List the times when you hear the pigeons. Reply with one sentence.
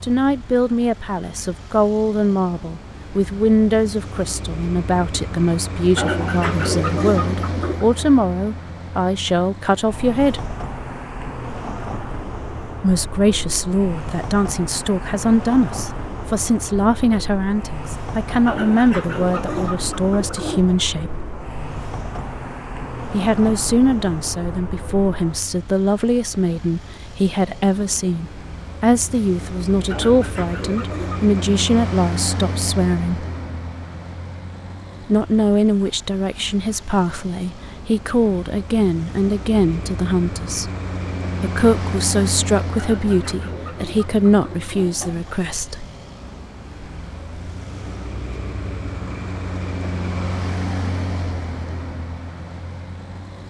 You can hear the pigeons from 6.0 to 7.8 s, from 18.4 to 20.8 s, from 29.9 to 31.4 s and from 42.8 to 45.4 s.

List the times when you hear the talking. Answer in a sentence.
You can hear the talking from 0.0 to 10.6 s, from 12.8 to 21.1 s, from 23.1 to 33.2 s, from 35.0 to 40.7 s and from 41.4 to 45.9 s.